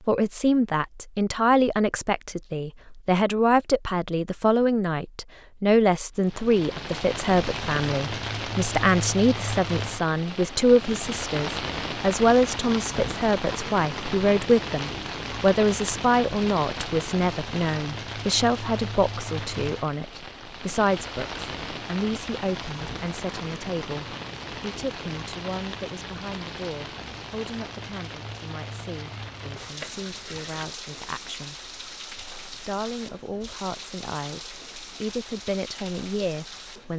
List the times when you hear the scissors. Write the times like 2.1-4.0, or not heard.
28.8-30.6.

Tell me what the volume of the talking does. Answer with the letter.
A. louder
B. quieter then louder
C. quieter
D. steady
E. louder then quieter
C.